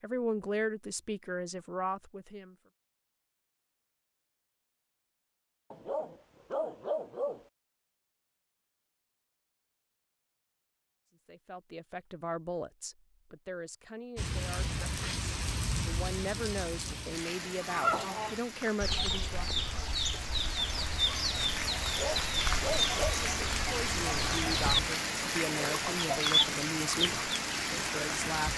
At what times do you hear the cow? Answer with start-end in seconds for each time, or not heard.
not heard.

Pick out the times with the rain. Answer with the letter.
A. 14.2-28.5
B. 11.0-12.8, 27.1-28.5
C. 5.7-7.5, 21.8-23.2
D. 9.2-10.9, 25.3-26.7
A.